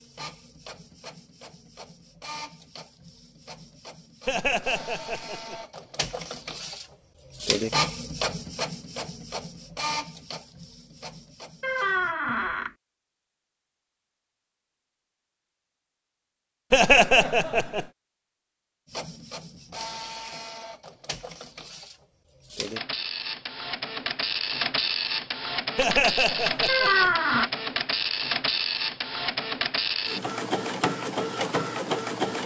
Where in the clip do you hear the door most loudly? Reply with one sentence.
The volume of the door peaks at 27 seconds.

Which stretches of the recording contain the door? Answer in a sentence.
You can hear the door from 11.6 to 12.7 s and from 26.6 to 27.5 s.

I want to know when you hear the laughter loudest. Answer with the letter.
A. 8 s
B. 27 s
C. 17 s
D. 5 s
C.